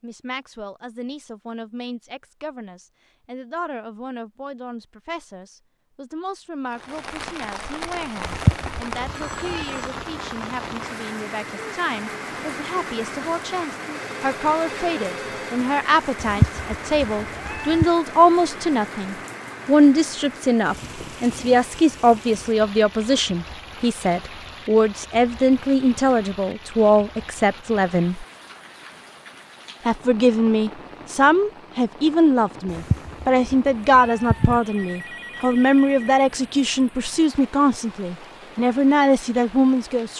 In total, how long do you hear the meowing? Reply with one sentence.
The meowing can be heard for 5 seconds in total.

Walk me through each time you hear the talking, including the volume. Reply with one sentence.
You can hear the talking from 0.0 to 28.2 s, getting louder; and from 29.9 to 40.1 s, at a steady volume.